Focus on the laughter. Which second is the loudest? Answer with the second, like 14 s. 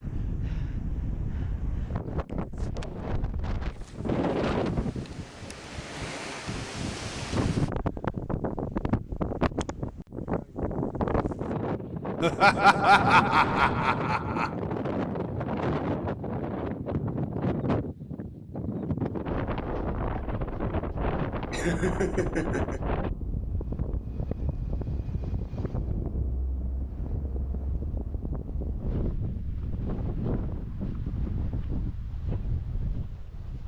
13 s.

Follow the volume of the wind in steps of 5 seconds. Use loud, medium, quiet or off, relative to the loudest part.
loud, loud, loud, loud, loud, medium, medium.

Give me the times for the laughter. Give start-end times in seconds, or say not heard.
12.2-14.5, 21.2-22.8.